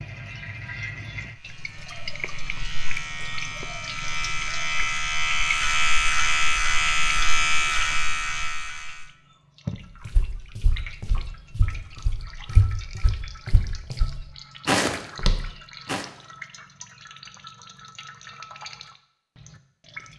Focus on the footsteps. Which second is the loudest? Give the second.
15 s.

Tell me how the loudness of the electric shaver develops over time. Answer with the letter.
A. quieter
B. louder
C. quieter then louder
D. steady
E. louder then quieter
B.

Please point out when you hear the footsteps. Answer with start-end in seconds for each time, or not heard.
10.1-16.1.